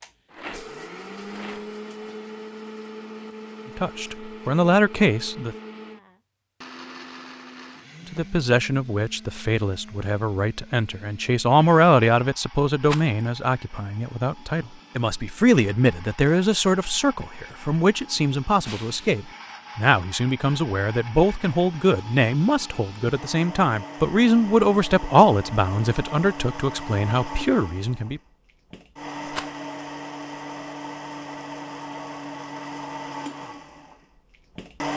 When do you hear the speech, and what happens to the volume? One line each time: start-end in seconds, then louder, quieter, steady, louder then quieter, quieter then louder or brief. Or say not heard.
3.8-5.5 brief
8.1-28.2 steady.